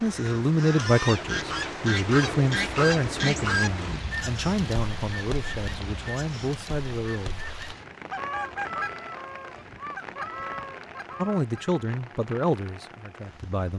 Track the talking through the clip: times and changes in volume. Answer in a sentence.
You can hear the talking from 0.0 to 7.4 s, getting quieter; and briefly from 11.2 to 13.7 s.